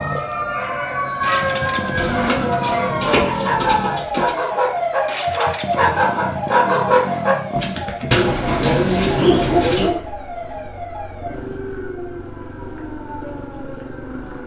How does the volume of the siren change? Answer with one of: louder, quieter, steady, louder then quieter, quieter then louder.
quieter.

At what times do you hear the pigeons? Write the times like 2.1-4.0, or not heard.
1.9-4.3, 8.1-9.9.